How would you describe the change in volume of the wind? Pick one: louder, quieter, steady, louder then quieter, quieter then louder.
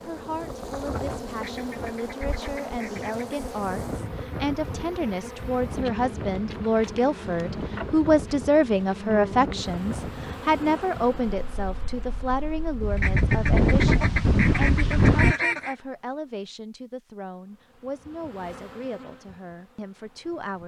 louder.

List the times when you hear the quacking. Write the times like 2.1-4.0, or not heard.
1.4-3.3, 12.9-15.8.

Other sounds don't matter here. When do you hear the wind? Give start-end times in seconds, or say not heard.
0.0-15.3.